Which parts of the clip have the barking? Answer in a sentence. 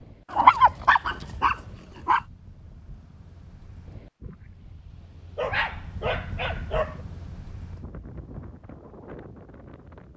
The barking can be heard from 0.3 to 2.2 s and from 5.3 to 7.0 s.